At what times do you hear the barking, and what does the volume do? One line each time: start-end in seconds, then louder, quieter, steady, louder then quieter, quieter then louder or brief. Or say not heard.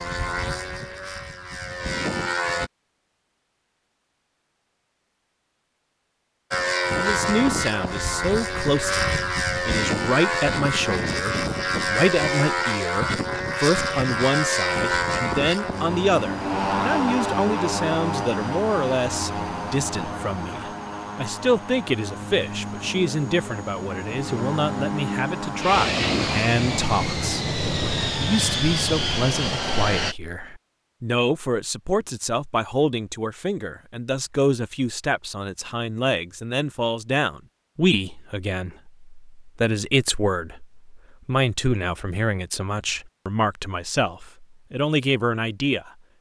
not heard.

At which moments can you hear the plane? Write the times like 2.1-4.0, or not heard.
0.0-2.7, 6.5-30.1.